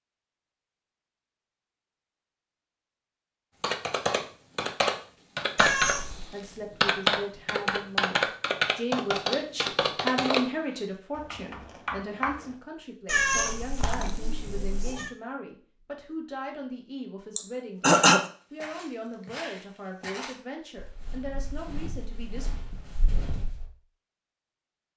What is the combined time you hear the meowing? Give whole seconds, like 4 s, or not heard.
3 s.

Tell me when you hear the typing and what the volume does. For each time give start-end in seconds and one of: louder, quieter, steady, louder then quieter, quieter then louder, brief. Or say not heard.
3.6-6.2 brief
6.8-12.6 quieter.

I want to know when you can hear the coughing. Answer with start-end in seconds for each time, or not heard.
17.4-18.3.